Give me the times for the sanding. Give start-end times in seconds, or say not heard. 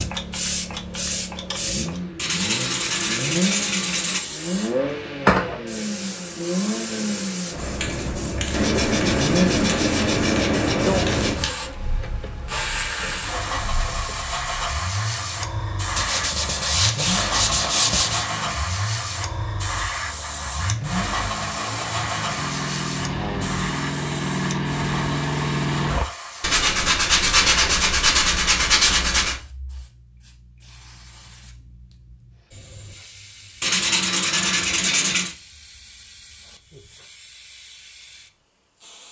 2.1-4.2, 8.5-11.4, 15.9-18.2, 26.4-29.4, 33.6-35.4.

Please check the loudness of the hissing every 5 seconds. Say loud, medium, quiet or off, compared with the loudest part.
loud, loud, loud, loud, loud, medium, quiet, quiet.